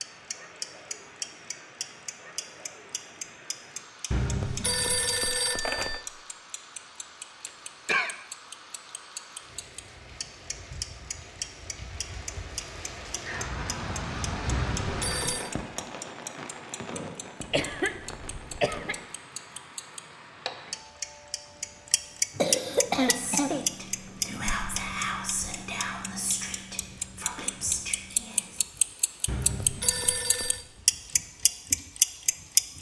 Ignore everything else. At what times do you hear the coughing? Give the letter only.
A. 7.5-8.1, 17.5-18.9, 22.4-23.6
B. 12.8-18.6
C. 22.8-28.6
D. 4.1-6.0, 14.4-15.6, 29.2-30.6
A.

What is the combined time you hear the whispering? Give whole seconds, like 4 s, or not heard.
6 s.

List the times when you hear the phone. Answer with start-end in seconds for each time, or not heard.
4.1-6.0, 14.4-15.6, 29.2-30.6.